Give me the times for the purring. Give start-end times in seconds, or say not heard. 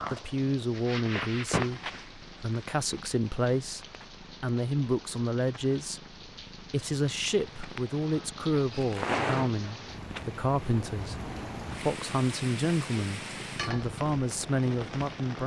0.0-15.4.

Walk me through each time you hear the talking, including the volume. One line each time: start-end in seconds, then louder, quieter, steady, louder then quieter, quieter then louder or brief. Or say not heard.
0.1-15.4 steady.